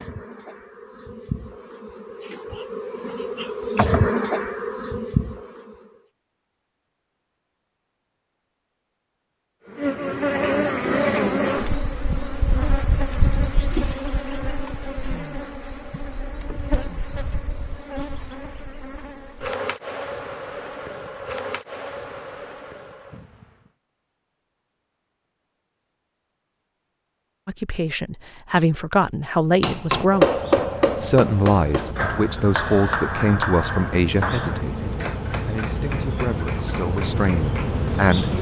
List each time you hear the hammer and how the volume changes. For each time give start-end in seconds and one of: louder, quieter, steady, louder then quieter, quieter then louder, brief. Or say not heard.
29.6-37.8 quieter.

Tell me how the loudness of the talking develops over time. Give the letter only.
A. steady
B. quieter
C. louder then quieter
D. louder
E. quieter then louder
B.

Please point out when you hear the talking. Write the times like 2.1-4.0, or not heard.
27.4-38.3.